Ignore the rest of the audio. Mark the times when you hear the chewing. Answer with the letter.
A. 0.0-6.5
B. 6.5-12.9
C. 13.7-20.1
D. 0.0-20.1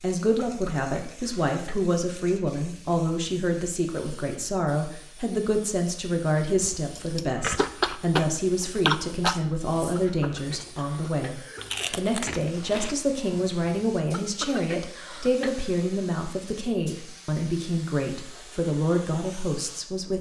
B.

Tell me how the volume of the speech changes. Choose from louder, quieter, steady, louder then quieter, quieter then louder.
steady.